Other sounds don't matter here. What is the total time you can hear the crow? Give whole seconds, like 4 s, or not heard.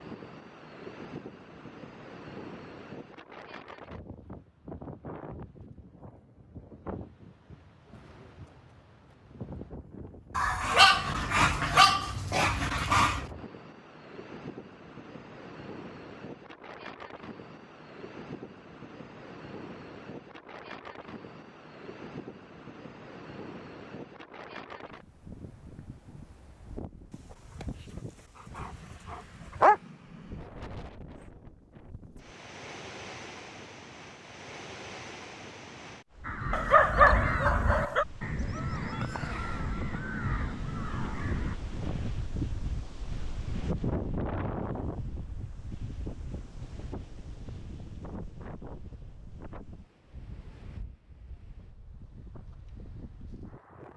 5 s.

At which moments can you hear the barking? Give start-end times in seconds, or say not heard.
10.3-13.2, 27.1-29.8, 36.5-38.0.